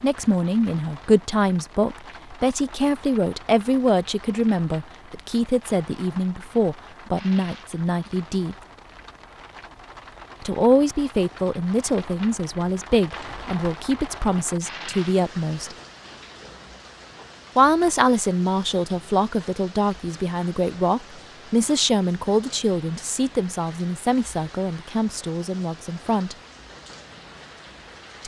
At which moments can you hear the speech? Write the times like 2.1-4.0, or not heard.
0.0-8.6, 10.4-15.8, 17.6-26.4.